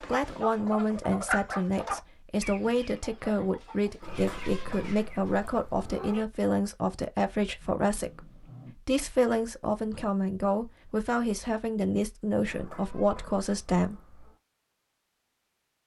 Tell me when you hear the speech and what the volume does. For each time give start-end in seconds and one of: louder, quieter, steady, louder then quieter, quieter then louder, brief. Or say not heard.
0.0-14.0 steady.